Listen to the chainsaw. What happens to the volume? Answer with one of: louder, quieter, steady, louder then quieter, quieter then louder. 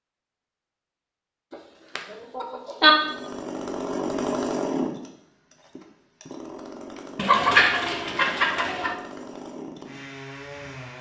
quieter.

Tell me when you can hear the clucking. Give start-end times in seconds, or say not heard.
1.5-2.9, 7.2-8.9.